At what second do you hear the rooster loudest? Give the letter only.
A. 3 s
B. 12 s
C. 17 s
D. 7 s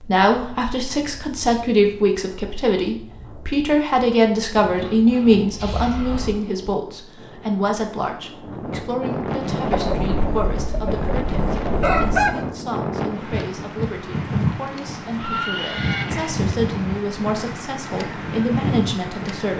B.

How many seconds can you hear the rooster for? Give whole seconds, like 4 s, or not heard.
3 s.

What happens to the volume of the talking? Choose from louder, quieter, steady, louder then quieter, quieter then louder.
quieter then louder.